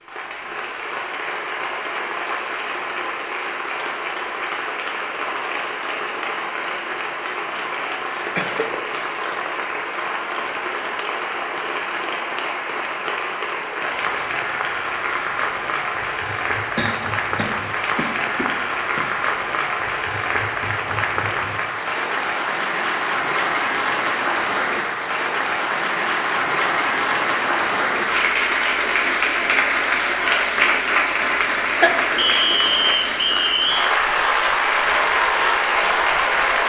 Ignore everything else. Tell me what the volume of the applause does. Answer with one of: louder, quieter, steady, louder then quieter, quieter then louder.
louder.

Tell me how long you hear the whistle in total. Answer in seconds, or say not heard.
2 s.